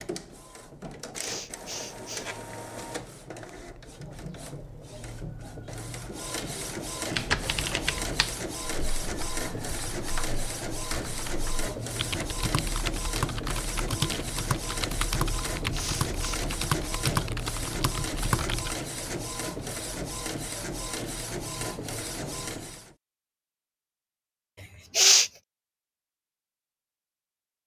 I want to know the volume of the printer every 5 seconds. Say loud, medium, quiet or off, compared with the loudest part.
medium, loud, loud, loud, loud, off.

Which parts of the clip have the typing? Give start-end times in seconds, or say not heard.
7.1-18.8.